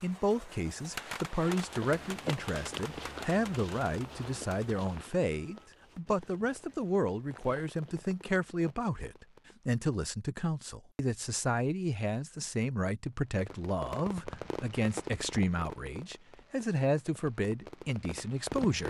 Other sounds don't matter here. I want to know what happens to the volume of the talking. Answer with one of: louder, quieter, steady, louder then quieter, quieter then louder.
steady.